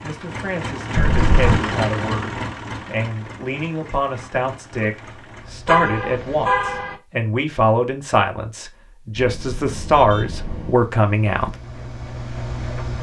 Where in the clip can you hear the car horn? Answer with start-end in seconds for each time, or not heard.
0.9-1.6, 5.7-7.0, 9.2-10.8.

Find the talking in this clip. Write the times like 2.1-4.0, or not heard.
0.0-11.6.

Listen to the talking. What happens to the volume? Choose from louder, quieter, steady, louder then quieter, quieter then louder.
louder.